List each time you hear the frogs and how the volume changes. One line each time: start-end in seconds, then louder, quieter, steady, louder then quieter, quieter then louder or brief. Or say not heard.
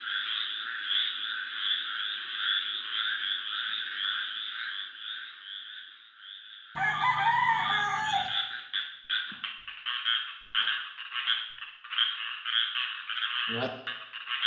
0.0-14.4 quieter then louder.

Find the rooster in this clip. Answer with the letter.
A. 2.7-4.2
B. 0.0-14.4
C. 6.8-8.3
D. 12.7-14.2
C.